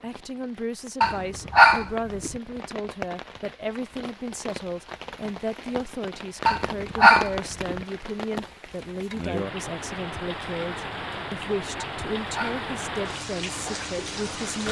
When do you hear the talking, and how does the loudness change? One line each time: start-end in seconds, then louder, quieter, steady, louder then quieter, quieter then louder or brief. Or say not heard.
0.0-14.6 steady.